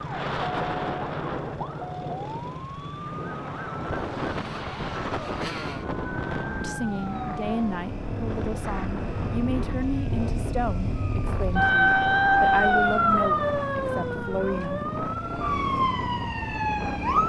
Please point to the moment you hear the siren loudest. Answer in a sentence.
The volume of the siren peaks at 12 seconds.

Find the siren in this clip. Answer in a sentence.
The siren can be heard from 0.0 to 17.2 s.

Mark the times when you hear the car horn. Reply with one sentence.
You can't hear the car horn here.